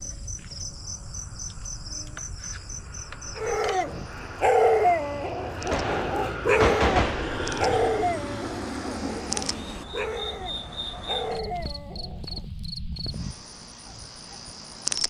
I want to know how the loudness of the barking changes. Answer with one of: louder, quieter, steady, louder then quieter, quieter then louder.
quieter.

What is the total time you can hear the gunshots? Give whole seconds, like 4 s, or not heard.
2 s.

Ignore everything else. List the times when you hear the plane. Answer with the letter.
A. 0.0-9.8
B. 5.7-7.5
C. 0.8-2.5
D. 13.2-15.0
A.